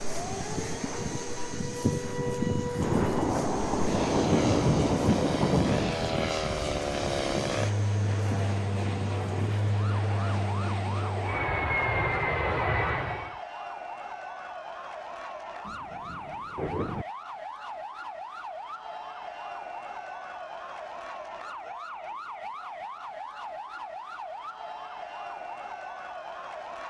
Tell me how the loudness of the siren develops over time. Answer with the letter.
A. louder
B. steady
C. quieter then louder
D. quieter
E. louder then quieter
D.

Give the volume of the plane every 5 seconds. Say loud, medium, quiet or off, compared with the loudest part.
medium, loud, loud, off, off, off.